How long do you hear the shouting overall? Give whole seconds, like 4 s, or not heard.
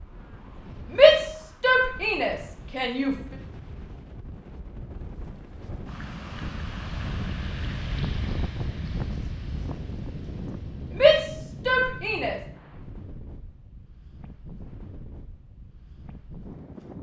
4 s.